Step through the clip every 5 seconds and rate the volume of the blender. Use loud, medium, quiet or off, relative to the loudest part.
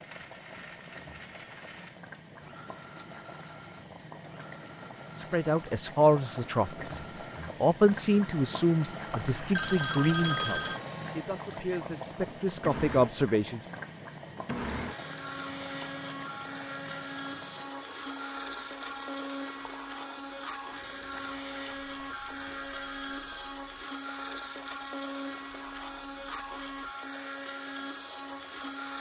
medium, medium, loud, loud, loud, loud.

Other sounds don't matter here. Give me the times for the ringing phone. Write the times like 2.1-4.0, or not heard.
9.1-10.8, 21.7-23.6.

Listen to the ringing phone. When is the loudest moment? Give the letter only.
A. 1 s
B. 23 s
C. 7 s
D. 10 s
D.